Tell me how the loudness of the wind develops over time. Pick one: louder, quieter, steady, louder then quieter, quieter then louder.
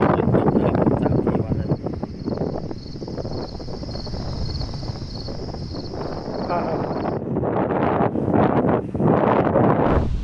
quieter then louder.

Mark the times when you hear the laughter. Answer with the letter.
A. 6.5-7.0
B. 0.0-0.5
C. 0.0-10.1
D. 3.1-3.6
A.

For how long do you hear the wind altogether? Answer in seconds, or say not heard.
10 s.